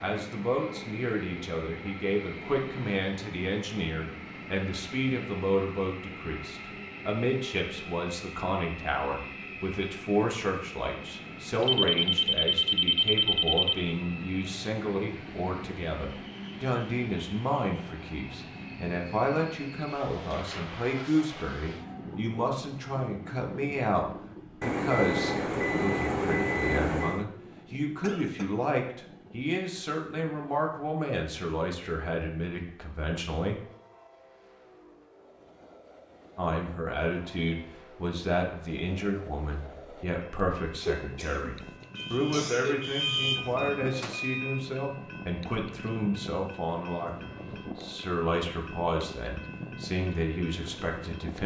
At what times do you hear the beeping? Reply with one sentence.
You can hear the beeping from 11.6 to 13.8 s, from 24.6 to 27.2 s and from 42.0 to 44.6 s.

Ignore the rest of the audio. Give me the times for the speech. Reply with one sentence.
The speech can be heard from 0.0 to 33.6 s and from 36.4 to 51.4 s.